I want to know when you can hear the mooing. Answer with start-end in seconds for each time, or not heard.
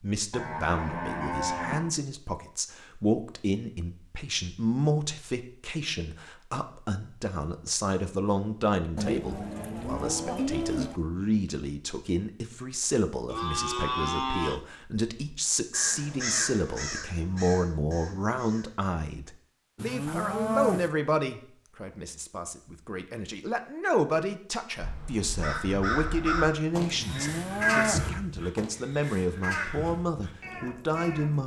0.3-2.0, 8.9-11.0, 13.3-14.7, 19.8-20.9, 27.0-28.1.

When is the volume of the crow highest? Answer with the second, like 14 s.
28 s.